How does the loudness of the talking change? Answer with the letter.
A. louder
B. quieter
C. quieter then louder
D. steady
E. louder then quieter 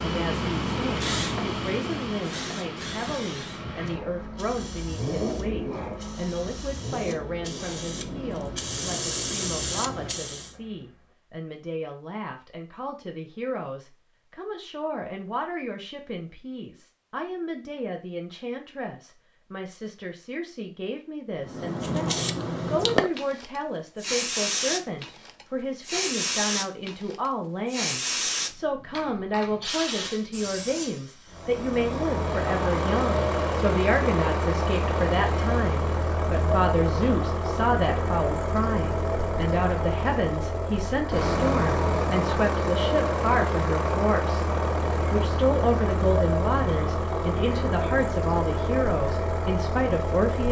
A.